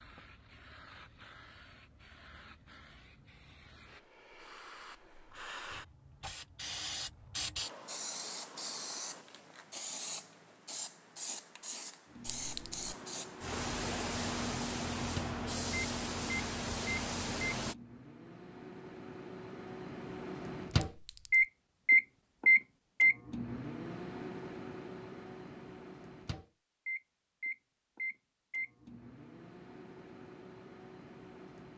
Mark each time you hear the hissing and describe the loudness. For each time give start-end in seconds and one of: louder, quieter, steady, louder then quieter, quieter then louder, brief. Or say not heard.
0.0-17.8 louder.